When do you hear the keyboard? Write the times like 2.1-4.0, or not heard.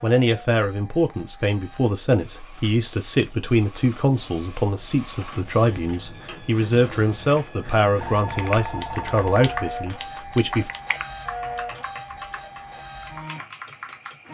8.3-14.2.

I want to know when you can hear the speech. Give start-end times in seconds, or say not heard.
0.0-10.7.